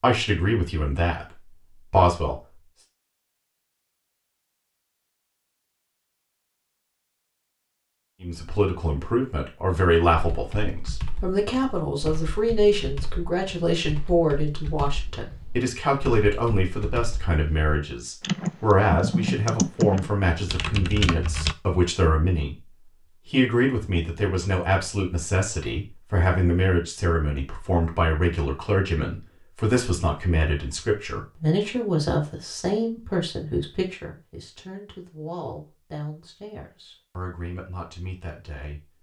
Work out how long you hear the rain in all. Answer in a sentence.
You can't hear the rain here.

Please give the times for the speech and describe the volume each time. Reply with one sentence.
You can hear the speech briefly from 0.0 to 2.4 s; and from 8.2 to 38.9 s, getting quieter.